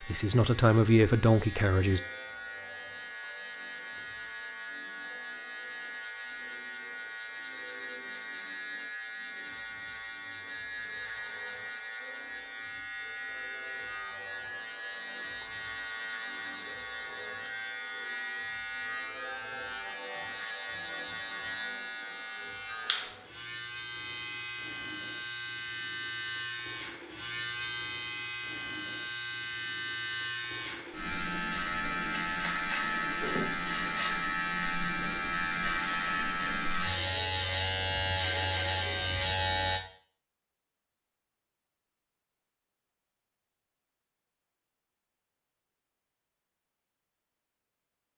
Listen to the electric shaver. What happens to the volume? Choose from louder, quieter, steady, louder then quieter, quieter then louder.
louder.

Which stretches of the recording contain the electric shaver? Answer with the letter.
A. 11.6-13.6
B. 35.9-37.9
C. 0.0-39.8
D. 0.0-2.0
C.